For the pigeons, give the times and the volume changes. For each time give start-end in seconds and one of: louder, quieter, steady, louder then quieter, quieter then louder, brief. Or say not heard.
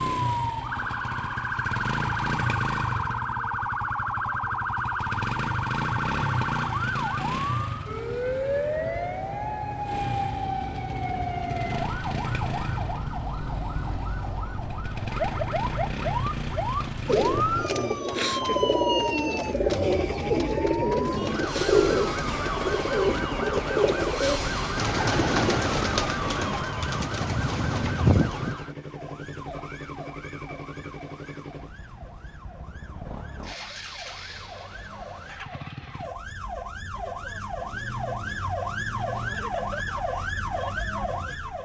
17.1-28.6 steady.